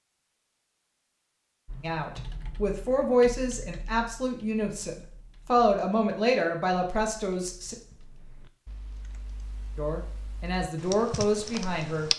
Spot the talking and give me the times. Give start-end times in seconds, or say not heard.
1.8-7.8, 9.8-12.1.